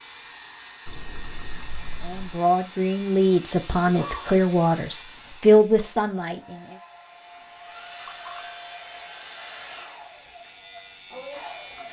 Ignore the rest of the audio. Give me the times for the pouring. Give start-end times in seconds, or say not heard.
0.8-2.4, 8.1-8.6.